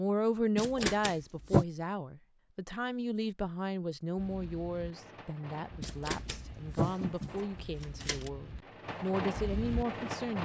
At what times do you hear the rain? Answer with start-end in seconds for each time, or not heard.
4.2-10.4.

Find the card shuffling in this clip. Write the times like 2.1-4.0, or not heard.
0.6-1.6, 5.8-8.3.